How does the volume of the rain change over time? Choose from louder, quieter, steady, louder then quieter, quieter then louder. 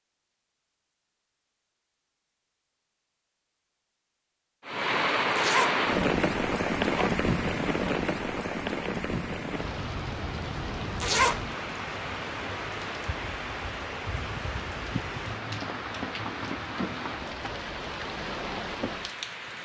quieter.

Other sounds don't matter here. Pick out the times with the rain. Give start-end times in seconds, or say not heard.
4.7-19.6.